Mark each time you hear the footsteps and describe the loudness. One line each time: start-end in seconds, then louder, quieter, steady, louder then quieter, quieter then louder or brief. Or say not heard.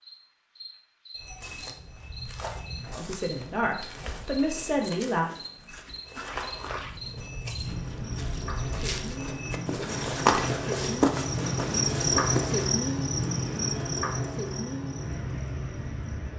1.1-12.7 louder.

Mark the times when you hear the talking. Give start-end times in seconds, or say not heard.
2.9-5.3.